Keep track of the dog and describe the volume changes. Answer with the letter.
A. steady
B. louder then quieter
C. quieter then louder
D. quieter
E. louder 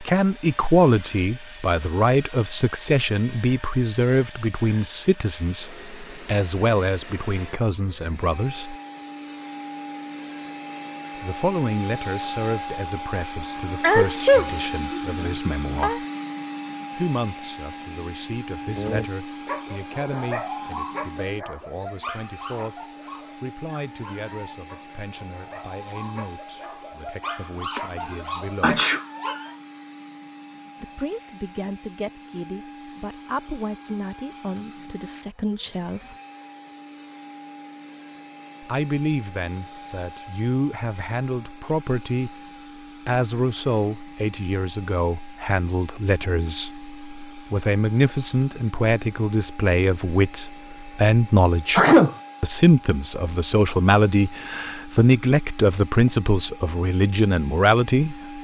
C.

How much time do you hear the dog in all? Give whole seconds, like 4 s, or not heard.
11 s.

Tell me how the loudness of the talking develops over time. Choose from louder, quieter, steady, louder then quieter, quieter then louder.
quieter then louder.